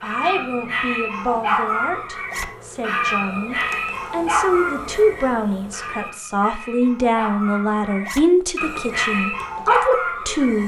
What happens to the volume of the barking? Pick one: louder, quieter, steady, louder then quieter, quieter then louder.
quieter then louder.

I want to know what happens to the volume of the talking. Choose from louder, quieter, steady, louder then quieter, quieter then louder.
louder.